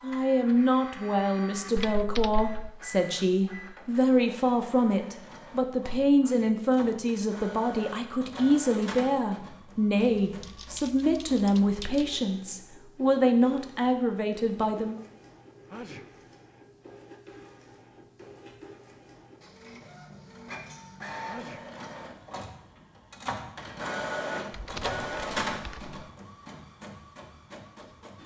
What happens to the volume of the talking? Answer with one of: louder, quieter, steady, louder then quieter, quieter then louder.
steady.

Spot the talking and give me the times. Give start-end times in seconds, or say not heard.
0.0-15.0.